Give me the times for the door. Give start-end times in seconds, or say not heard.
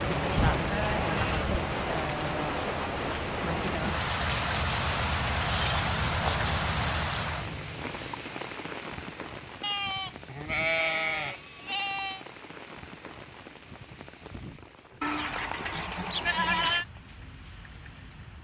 not heard.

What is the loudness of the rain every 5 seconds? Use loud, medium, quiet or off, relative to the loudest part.
loud, loud, quiet, quiet.